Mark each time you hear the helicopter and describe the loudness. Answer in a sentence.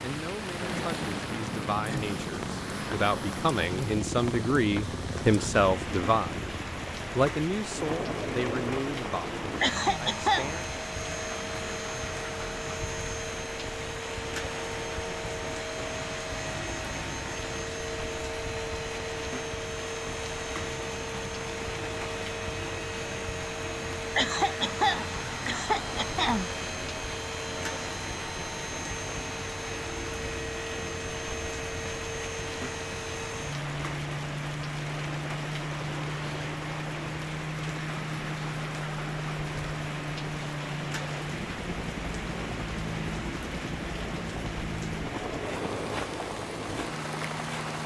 The helicopter can be heard from 0.0 to 47.8 s, at a steady volume.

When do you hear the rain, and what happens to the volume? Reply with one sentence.
The rain can be heard from 0.0 to 47.8 s, at a steady volume.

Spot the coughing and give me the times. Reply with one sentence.
The coughing can be heard from 9.6 to 10.5 s and from 24.1 to 26.5 s.